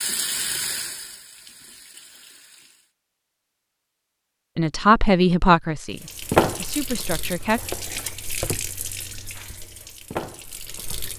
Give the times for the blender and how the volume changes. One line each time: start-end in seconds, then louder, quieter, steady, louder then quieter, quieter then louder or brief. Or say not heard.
not heard.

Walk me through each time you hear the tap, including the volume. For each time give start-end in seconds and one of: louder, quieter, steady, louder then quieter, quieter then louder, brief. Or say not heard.
0.0-2.9 brief
6.0-11.1 quieter then louder.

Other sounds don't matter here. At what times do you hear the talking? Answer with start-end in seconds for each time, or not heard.
4.5-7.6.